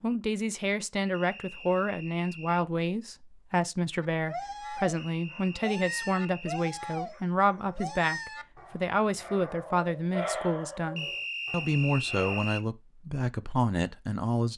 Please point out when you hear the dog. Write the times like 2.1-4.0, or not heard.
4.0-12.4.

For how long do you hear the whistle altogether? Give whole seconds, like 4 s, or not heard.
5 s.